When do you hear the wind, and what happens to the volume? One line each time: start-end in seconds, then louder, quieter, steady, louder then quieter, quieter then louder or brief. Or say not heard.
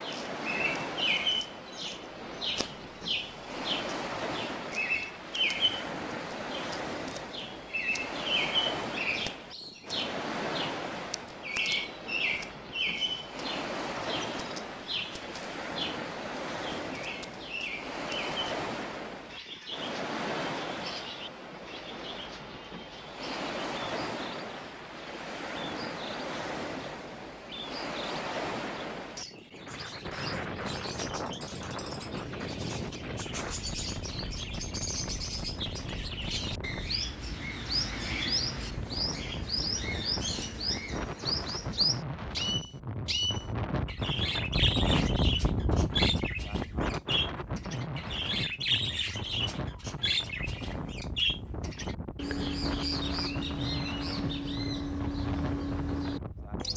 0.0-56.7 steady.